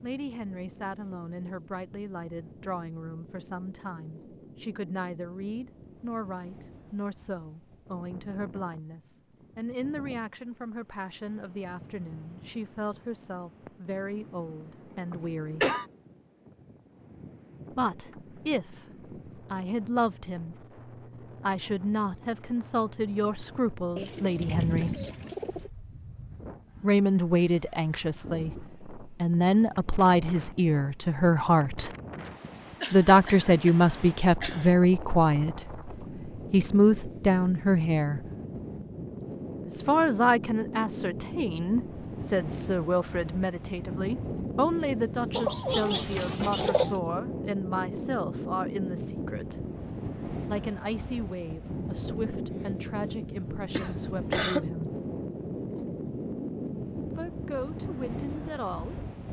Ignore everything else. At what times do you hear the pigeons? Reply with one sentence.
You can hear the pigeons from 23.9 to 25.7 s and from 45.3 to 47.0 s.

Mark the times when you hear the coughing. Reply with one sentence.
You can hear the coughing from 15.1 to 15.8 s, from 32.8 to 34.7 s and from 53.7 to 54.6 s.